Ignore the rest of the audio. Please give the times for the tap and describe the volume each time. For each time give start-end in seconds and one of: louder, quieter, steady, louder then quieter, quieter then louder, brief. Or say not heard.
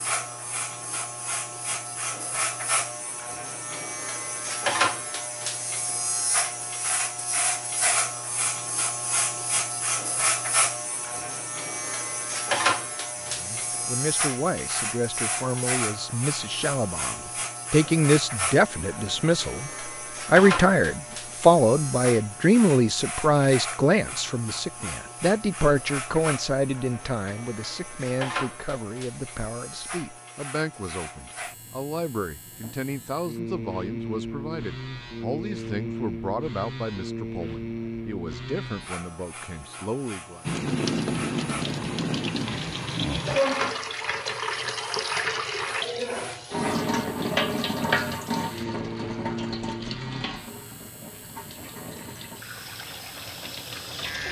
40.5-54.2 quieter.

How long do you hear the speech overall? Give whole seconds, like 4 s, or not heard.
27 s.